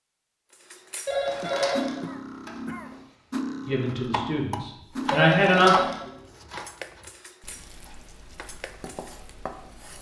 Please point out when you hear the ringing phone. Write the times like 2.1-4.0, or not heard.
1.1-3.0, 5.1-6.5.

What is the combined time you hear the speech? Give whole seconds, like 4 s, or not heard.
2 s.